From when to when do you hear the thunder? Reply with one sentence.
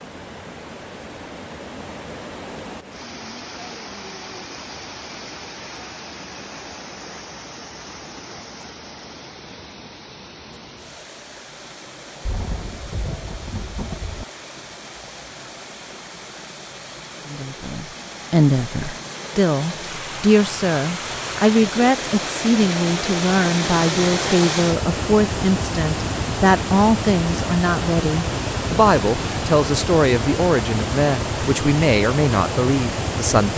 The thunder can be heard from 12.2 to 14.2 s.